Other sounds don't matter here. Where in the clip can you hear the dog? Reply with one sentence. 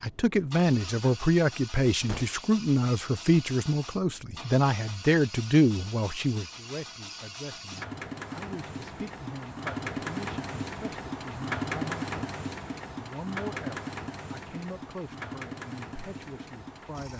The dog can't be heard in this clip.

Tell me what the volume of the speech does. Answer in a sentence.
The loudness of the speech goes down.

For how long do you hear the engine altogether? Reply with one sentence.
The engine can be heard for 17 seconds in total.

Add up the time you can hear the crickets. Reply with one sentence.
You can't hear the crickets here.